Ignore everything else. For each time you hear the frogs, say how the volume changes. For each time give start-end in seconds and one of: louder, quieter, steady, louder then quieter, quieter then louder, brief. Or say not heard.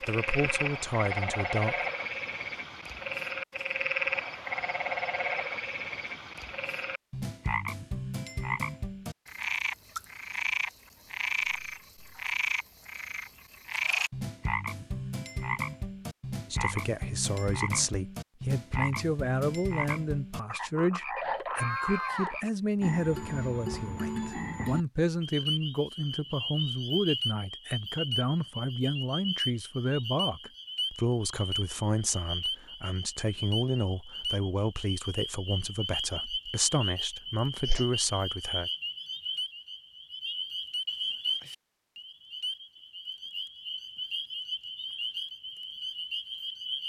0.0-46.8 steady.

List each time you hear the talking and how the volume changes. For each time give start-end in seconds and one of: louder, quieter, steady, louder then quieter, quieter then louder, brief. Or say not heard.
0.0-1.9 brief
16.4-38.7 steady.